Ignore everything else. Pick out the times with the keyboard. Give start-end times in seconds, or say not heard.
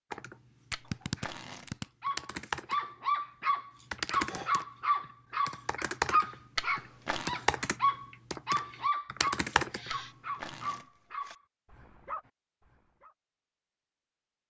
0.1-10.5.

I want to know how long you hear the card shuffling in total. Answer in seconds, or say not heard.
3 s.